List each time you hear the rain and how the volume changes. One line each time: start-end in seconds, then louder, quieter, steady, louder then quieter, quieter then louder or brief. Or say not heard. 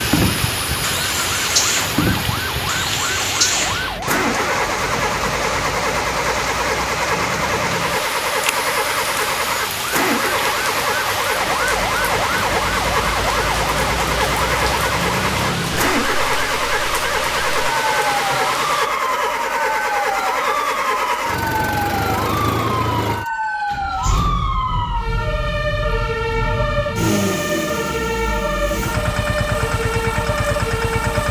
0.0-18.9 steady.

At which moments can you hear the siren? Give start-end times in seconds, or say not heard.
0.0-31.2.